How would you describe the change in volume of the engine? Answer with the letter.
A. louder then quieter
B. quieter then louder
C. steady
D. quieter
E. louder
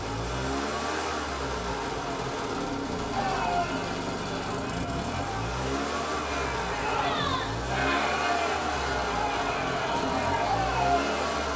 C.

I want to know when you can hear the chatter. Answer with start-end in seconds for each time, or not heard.
3.1-11.5.